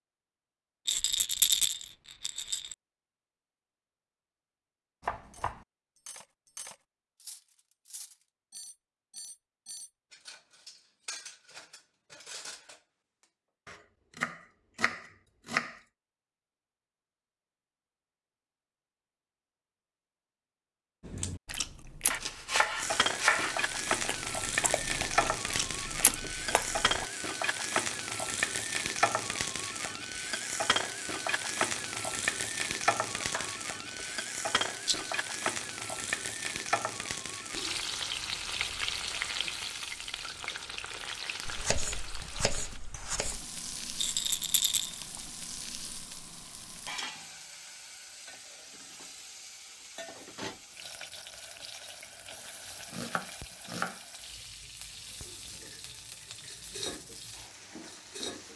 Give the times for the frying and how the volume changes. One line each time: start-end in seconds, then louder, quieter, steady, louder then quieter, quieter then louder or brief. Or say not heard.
22.8-58.5 quieter.